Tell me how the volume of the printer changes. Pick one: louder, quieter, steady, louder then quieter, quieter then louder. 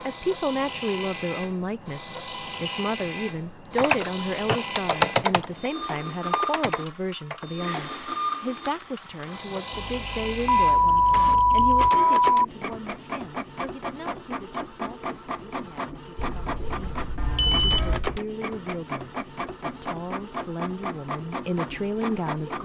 steady.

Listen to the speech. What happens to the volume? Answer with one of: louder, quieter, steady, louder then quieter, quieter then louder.
quieter then louder.